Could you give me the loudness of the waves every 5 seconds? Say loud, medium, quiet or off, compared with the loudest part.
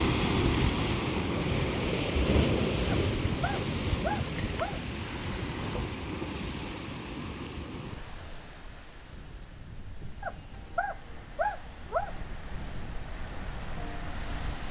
loud, medium, quiet.